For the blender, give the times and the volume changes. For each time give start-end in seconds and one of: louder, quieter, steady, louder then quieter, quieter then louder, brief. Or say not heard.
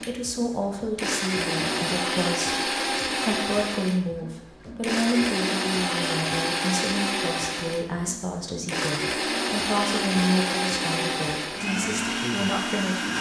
0.0-13.1 steady.